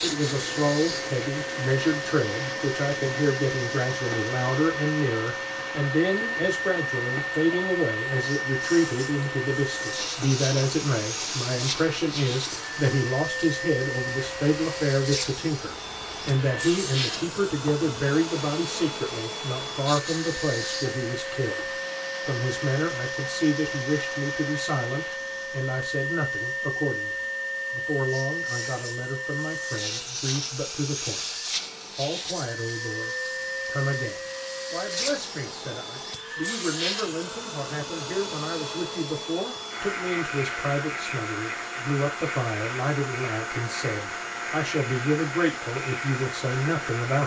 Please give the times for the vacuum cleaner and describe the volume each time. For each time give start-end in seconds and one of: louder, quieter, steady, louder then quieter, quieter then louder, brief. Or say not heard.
0.0-47.2 steady.